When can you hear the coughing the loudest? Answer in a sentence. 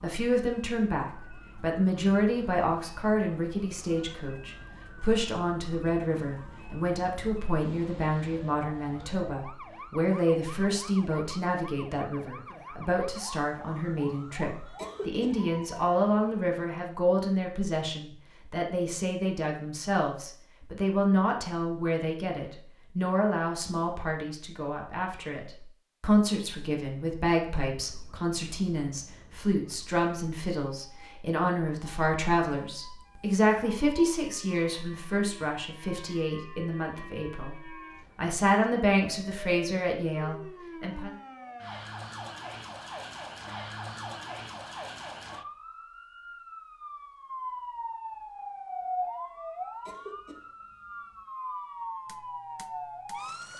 The loudest moment of the coughing is at 15 seconds.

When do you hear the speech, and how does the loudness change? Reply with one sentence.
You can hear the speech from 0.0 to 37.5 s, at a steady volume; and briefly from 38.1 to 41.1 s.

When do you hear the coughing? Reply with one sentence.
The coughing can be heard from 14.8 to 15.3 s and from 49.9 to 50.4 s.